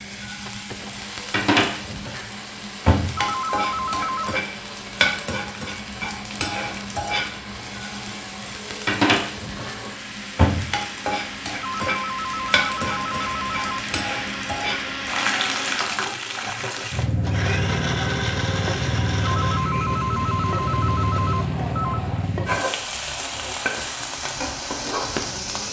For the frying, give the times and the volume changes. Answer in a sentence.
The frying can be heard from 0.0 to 25.6 s, at a steady volume.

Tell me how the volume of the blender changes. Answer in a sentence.
The volume of the blender goes up, then down.